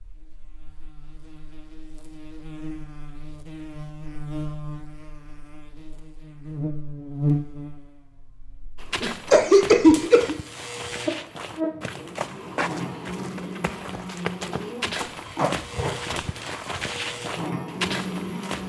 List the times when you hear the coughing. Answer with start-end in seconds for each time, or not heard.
9.0-10.3.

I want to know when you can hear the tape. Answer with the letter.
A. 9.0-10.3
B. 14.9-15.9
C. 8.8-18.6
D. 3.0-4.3
B.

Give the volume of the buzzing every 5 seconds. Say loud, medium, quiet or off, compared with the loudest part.
medium, loud, loud, loud.